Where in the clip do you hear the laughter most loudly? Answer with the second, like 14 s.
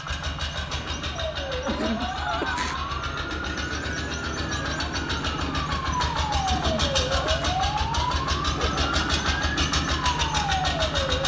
2 s.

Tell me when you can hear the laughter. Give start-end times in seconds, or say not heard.
1.6-3.0, 6.5-7.5.